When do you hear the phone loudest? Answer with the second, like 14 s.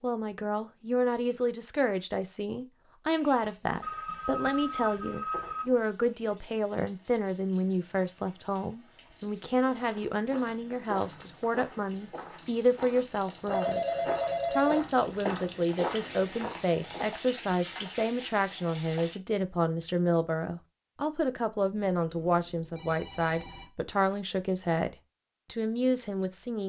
14 s.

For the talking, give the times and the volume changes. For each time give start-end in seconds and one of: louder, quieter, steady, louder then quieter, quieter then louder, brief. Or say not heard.
0.0-26.6 steady.